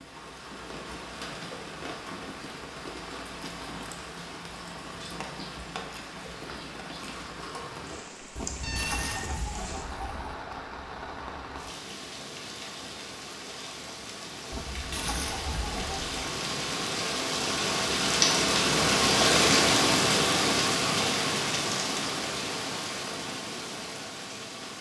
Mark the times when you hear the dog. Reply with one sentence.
The dog can't be heard in this clip.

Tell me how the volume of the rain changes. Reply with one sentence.
The volume of the rain goes up.